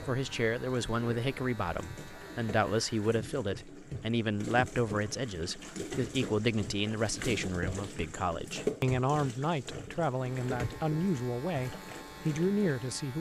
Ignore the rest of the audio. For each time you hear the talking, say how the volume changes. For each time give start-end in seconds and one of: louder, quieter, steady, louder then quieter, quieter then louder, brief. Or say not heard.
0.1-13.1 steady.